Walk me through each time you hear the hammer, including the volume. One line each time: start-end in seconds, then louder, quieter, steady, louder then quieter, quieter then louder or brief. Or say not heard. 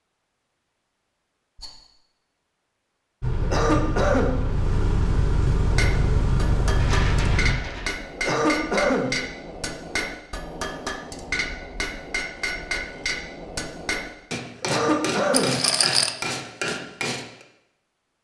5.5-17.4 steady.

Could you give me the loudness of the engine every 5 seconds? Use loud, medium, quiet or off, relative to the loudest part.
loud, loud, off, off.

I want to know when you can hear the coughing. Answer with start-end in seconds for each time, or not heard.
3.4-4.3, 8.2-9.1, 14.6-15.6.